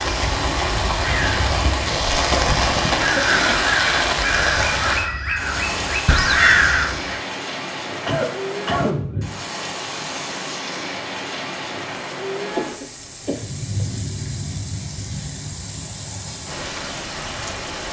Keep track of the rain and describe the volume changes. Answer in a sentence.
The loudness of the rain goes down.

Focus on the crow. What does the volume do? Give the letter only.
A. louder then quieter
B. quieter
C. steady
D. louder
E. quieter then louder
D.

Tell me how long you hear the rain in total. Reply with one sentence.
The rain can be heard for 18 seconds in total.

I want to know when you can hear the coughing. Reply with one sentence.
You can hear the coughing from 3.0 to 3.6 s, from 7.9 to 9.4 s and from 12.5 to 13.8 s.